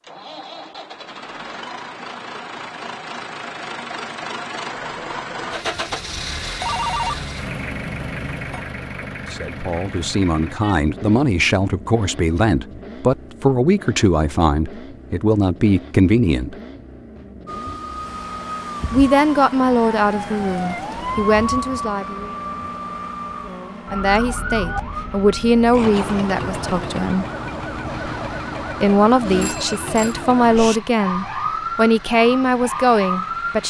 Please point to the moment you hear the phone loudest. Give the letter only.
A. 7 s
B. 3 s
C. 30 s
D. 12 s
A.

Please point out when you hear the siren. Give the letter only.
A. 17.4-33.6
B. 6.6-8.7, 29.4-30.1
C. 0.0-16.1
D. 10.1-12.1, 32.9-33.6
A.